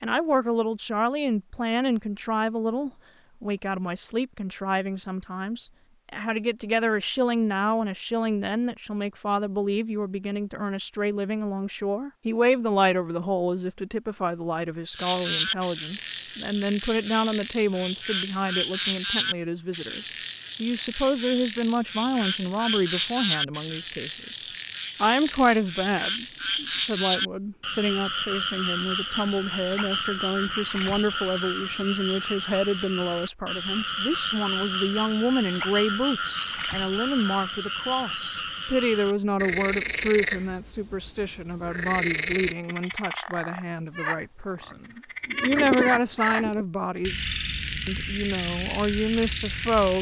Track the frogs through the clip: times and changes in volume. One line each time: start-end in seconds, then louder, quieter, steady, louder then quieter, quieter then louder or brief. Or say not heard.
14.9-49.9 steady.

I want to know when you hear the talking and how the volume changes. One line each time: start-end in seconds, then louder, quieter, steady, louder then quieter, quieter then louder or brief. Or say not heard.
0.0-49.9 steady.